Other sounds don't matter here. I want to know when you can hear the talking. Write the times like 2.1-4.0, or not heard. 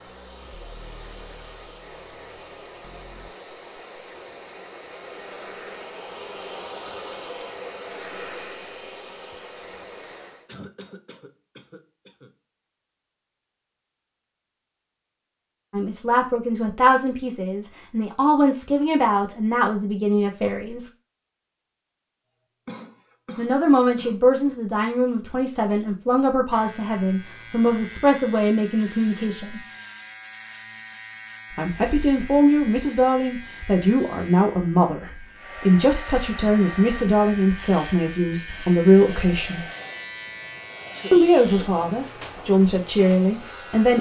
15.7-20.9, 23.4-29.6, 31.6-39.6, 41.1-43.9.